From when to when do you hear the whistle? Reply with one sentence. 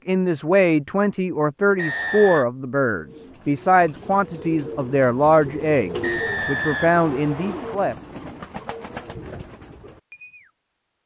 The whistle can be heard from 1.8 to 2.5 s and from 6.0 to 7.8 s.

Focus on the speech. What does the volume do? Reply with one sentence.
The loudness of the speech stays about the same.